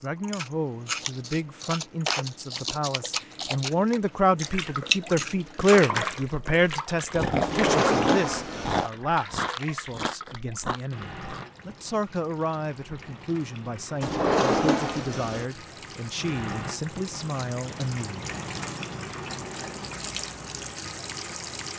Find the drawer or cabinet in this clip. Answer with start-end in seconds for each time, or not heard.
7.4-8.9, 14.0-15.4.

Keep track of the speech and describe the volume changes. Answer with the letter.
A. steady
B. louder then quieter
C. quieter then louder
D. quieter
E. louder
B.